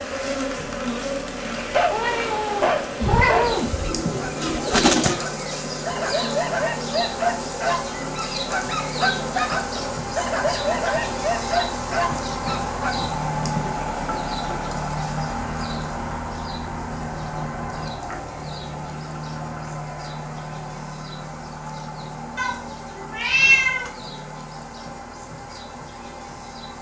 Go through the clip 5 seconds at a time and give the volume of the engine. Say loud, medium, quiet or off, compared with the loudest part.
medium, medium, loud, loud, medium, medium.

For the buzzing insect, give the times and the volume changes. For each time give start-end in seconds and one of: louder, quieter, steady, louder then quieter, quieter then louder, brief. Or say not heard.
0.0-26.7 quieter.